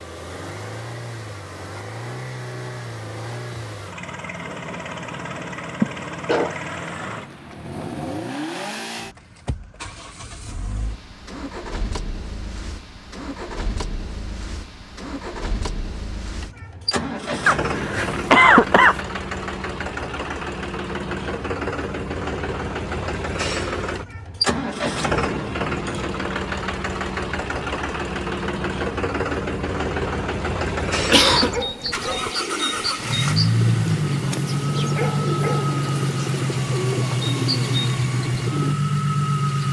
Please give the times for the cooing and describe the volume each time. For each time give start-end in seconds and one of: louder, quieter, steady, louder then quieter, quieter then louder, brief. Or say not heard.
31.3-38.8 steady.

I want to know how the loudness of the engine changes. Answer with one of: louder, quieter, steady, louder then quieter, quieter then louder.
louder.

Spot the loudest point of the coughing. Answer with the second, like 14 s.
18 s.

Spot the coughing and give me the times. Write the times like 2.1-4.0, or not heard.
5.8-7.0, 17.4-19.0, 30.9-31.6.